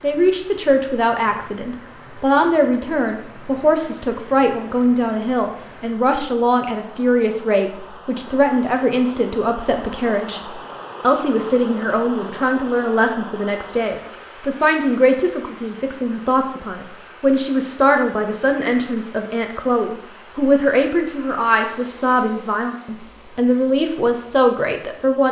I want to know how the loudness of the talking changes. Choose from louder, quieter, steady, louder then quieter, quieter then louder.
steady.